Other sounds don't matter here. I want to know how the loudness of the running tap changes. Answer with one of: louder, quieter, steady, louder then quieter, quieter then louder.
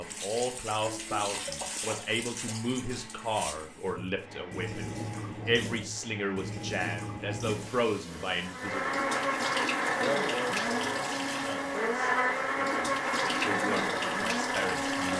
steady.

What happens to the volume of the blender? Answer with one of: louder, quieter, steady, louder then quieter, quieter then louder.
louder.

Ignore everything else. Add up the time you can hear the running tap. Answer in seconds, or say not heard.
15 s.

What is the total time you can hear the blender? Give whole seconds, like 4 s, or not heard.
15 s.